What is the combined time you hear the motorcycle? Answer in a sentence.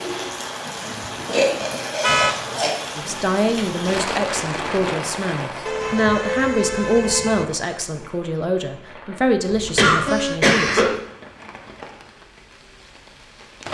The motorcycle can't be heard in this clip.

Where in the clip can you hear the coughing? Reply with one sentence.
You can hear the coughing from 1.2 to 2.8 s, from 4.8 to 5.8 s and from 9.8 to 10.9 s.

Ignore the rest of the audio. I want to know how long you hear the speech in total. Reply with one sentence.
You can hear the speech for 8 seconds altogether.